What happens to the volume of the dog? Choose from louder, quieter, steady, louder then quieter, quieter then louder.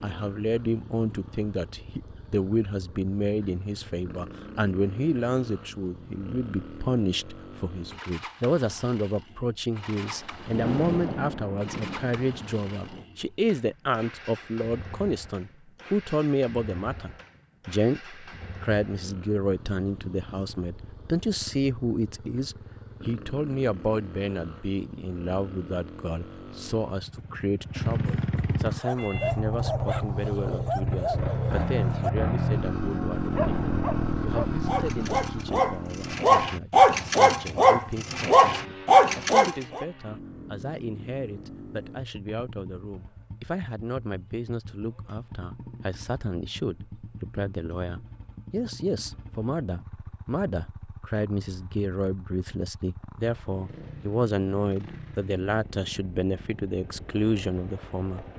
louder.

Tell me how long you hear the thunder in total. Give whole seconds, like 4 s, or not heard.
4 s.